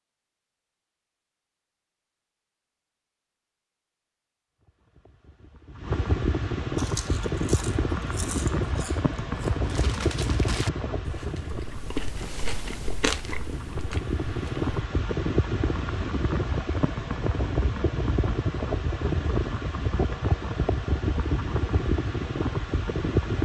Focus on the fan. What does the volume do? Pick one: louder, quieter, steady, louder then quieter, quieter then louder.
steady.